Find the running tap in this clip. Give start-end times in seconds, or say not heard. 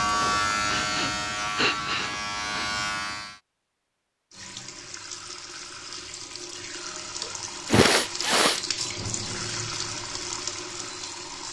4.3-11.4.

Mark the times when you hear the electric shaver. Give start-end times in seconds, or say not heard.
0.0-3.4.